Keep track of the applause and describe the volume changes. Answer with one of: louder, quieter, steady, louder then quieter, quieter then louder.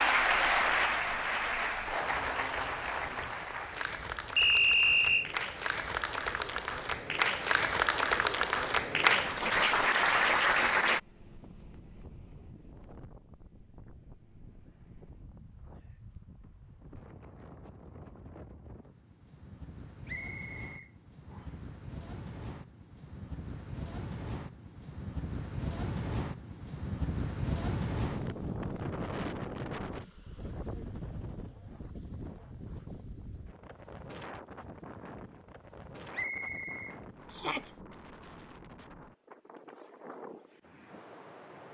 quieter then louder.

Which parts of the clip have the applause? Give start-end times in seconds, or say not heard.
0.0-11.0.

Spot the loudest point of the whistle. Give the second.
5 s.